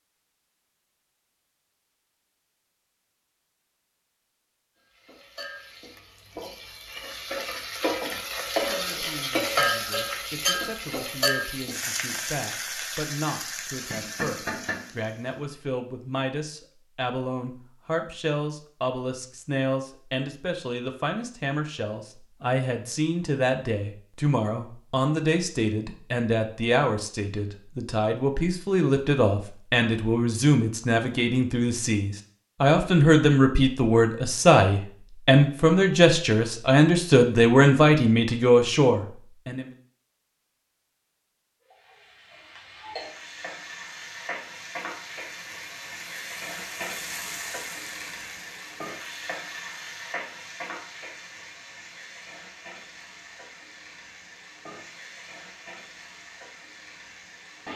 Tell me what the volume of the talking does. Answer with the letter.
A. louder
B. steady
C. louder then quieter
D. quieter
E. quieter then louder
A.